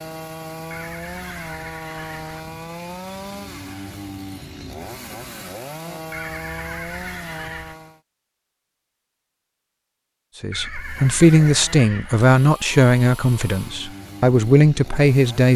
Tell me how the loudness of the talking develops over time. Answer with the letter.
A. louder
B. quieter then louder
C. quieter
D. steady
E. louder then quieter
B.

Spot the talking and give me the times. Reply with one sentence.
The talking can be heard from 10.4 to 15.5 s.